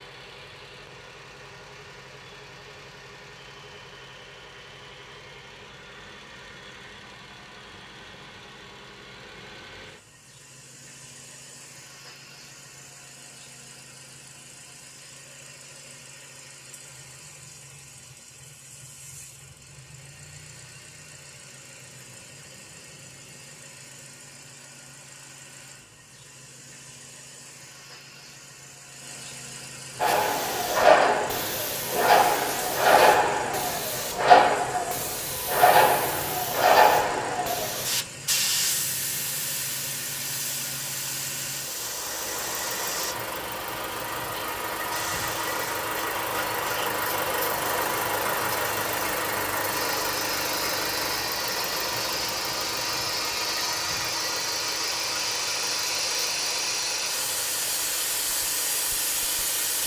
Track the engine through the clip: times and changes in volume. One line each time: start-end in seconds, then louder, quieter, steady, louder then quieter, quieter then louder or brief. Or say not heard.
0.0-59.8 louder.